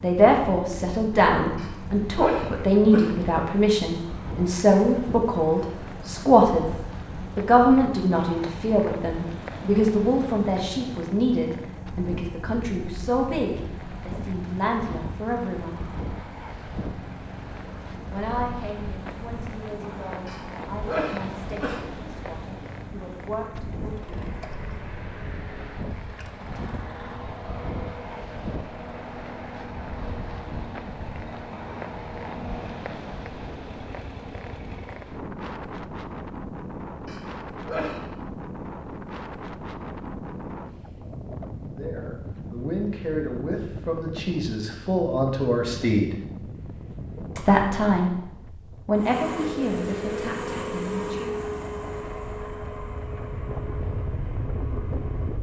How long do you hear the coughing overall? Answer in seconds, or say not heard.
4 s.